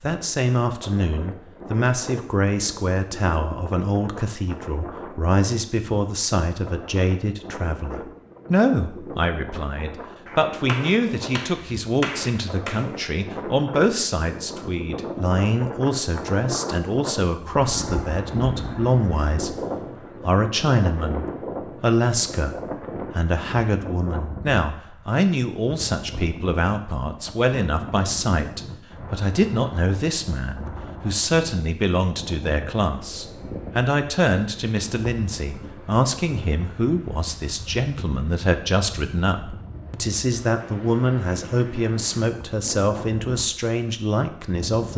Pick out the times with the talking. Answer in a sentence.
You can hear the talking from 0.0 to 19.6 s and from 20.2 to 44.9 s.